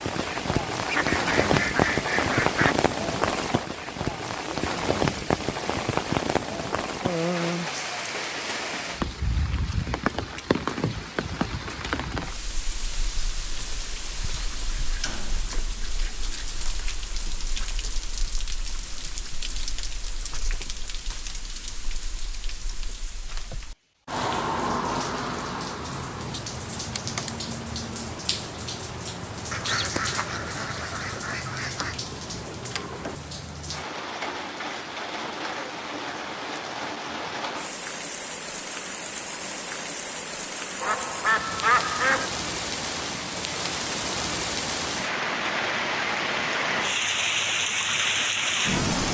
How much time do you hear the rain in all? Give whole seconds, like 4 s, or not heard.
49 s.